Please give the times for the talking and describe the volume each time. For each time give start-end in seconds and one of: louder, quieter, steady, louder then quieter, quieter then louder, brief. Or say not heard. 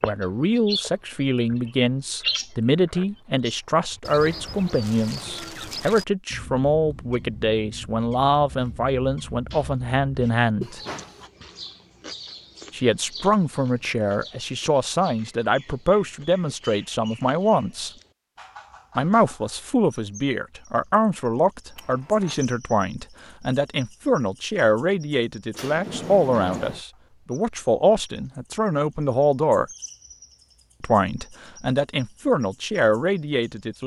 0.0-10.8 steady
12.7-17.9 steady
18.9-29.6 steady
30.8-33.8 brief.